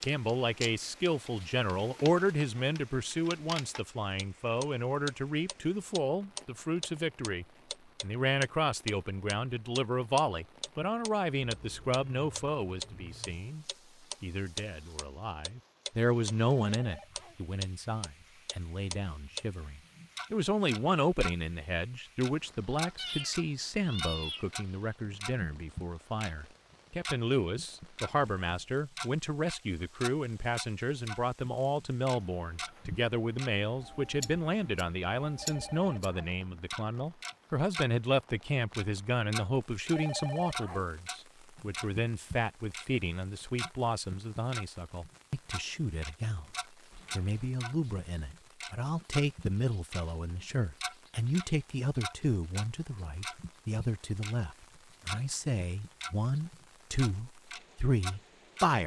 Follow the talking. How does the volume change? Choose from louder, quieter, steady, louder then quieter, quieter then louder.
steady.